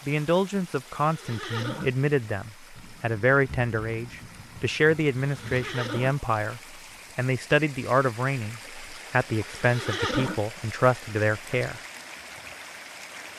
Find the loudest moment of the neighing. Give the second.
10 s.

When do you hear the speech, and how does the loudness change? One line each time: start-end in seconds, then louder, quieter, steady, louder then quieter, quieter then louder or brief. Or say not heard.
0.1-11.8 steady.